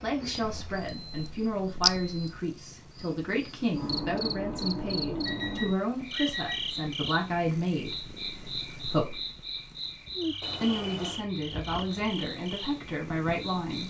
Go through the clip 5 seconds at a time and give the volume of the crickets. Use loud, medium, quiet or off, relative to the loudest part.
loud, medium, medium.